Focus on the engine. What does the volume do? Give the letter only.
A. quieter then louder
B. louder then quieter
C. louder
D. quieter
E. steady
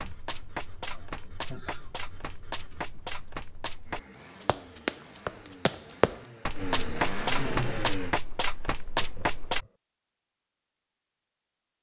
C.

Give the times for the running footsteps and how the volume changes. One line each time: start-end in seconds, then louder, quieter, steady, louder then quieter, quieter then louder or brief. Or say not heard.
0.0-9.7 louder.